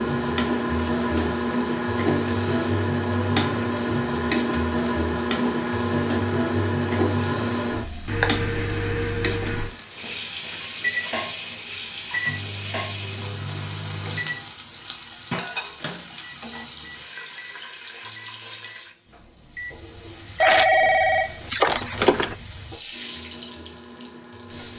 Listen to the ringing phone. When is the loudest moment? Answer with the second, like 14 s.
21 s.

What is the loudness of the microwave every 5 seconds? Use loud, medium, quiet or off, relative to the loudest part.
loud, loud, medium, quiet, quiet.